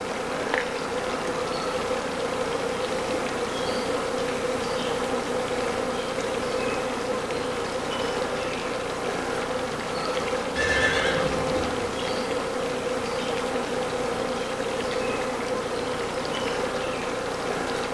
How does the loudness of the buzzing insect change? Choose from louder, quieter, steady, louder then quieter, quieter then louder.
steady.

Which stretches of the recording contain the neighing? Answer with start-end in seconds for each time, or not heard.
10.6-11.9.